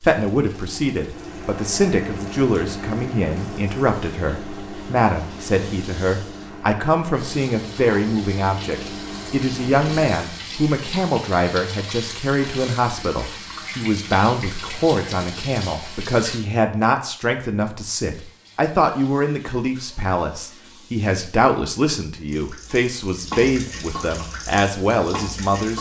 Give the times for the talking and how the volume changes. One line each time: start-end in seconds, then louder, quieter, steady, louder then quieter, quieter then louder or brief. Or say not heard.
0.0-25.7 steady.